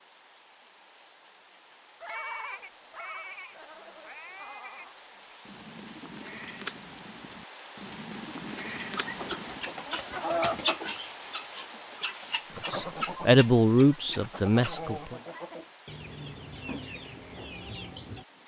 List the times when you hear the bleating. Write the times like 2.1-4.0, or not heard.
2.0-9.8.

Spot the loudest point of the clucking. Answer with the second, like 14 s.
11 s.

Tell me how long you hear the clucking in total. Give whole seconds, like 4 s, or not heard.
9 s.